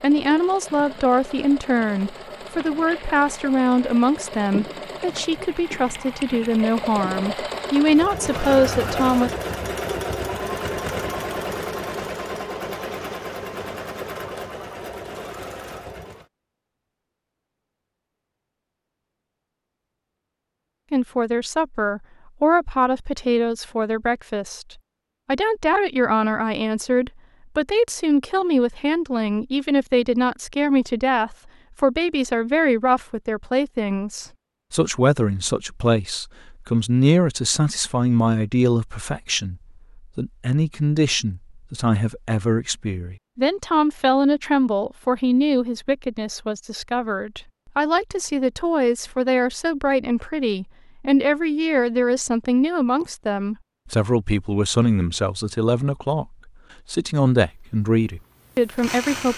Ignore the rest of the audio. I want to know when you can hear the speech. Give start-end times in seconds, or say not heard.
0.0-9.3, 20.9-24.6, 25.2-59.3.